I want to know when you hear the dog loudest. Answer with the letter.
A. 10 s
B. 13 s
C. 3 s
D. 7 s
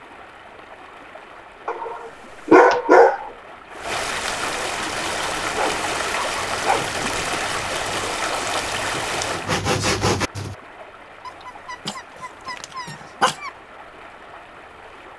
C.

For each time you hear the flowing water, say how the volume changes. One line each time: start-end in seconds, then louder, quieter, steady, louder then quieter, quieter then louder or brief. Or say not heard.
0.0-15.1 louder then quieter.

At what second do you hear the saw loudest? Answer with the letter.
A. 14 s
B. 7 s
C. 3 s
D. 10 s
D.